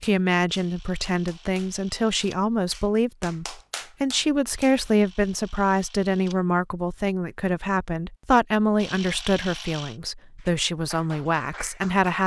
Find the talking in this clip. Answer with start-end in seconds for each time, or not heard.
0.0-12.2.